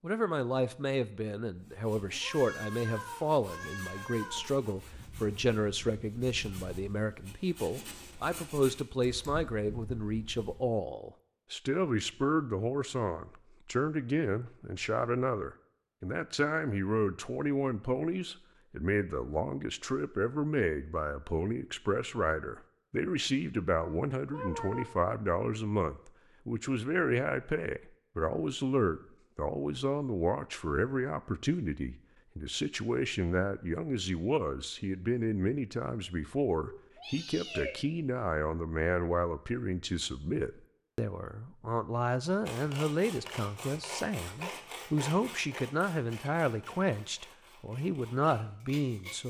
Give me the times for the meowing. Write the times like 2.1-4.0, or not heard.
2.2-4.5, 23.8-24.9, 36.6-37.8.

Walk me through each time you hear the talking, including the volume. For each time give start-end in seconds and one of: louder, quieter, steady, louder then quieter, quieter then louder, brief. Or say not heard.
0.0-49.2 steady.